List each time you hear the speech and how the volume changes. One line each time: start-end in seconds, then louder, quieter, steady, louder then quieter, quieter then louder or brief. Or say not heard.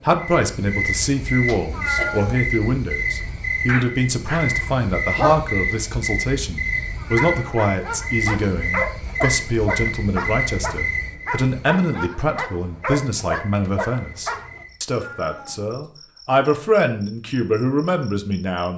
0.0-18.7 steady.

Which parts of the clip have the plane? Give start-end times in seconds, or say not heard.
not heard.